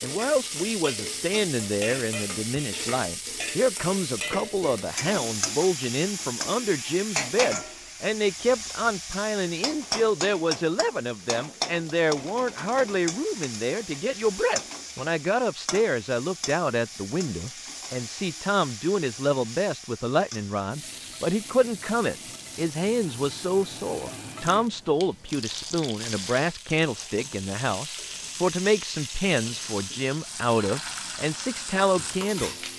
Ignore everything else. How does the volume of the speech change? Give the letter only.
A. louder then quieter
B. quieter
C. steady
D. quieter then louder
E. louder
C.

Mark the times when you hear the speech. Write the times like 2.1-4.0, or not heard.
0.0-32.6.